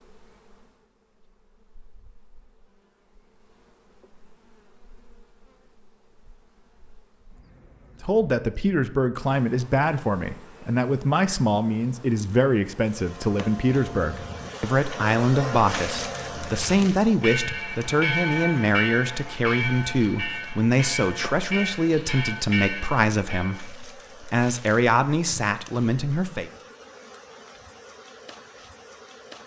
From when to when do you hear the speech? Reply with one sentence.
You can hear the speech from 8.0 to 26.5 s.